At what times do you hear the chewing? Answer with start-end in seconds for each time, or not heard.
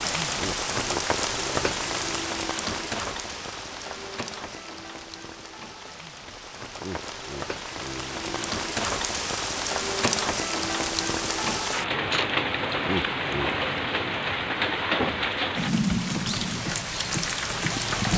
not heard.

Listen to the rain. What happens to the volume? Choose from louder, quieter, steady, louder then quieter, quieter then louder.
quieter then louder.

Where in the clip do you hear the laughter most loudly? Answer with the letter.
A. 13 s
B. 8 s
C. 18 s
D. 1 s
A.